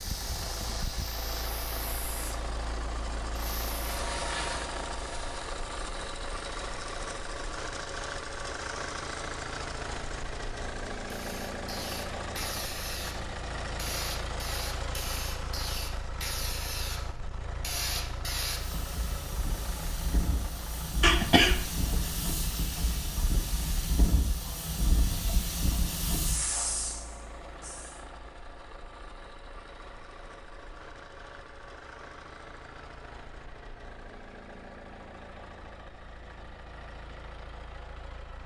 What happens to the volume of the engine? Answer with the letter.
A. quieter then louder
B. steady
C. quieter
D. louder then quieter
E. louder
C.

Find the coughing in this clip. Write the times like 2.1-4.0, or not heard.
21.0-22.1.